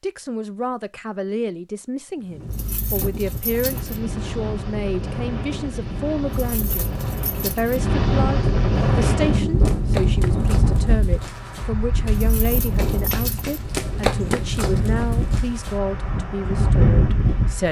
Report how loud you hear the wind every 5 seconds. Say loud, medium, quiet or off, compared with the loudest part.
medium, loud, loud, loud.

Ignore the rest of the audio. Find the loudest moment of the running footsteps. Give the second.
14 s.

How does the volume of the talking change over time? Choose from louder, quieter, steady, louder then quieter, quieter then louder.
steady.